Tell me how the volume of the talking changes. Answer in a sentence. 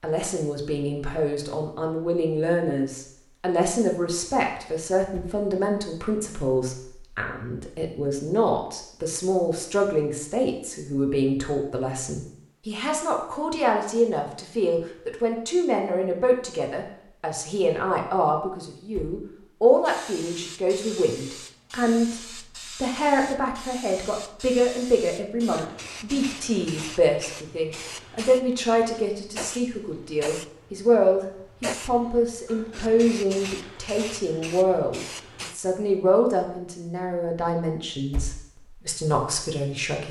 The volume of the talking stays about the same.